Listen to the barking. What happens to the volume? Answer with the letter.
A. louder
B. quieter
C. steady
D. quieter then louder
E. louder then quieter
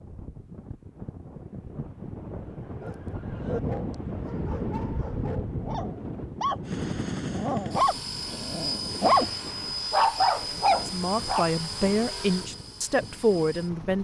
A.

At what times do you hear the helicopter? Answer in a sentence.
You can hear the helicopter from 6.6 to 14.0 s.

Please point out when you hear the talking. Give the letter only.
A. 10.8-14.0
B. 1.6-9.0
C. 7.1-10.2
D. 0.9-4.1
A.